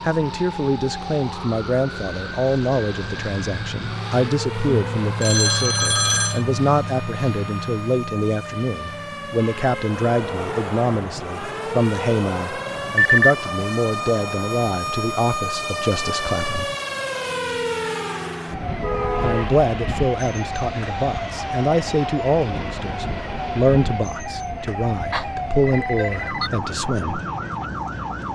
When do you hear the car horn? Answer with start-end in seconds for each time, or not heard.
9.1-10.0, 18.8-19.6.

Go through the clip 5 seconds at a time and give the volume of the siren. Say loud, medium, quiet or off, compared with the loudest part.
medium, medium, loud, loud, loud, loud.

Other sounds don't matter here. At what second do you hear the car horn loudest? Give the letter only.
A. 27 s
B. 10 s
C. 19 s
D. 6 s
C.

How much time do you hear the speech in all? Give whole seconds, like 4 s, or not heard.
25 s.